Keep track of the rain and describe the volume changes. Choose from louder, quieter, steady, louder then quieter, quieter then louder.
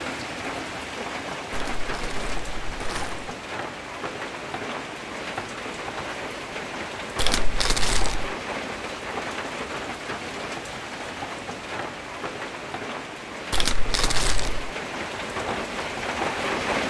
steady.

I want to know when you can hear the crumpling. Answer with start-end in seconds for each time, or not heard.
1.5-3.3, 7.2-8.3, 13.5-14.7.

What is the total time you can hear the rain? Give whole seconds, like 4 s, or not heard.
17 s.